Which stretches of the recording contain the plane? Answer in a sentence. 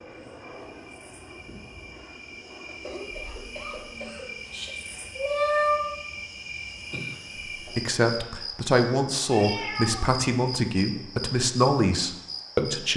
You can hear the plane from 0.0 to 4.8 s.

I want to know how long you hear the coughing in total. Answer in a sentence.
You can hear the coughing for 3 seconds altogether.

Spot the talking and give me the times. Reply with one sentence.
You can hear the talking from 7.6 to 12.9 s.